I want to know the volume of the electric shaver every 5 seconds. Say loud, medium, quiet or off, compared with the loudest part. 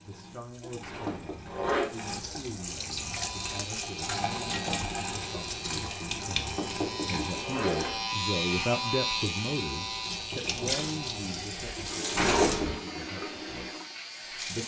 medium, loud, medium.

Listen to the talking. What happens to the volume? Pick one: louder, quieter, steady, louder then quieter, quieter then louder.
louder then quieter.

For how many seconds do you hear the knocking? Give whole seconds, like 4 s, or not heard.
3 s.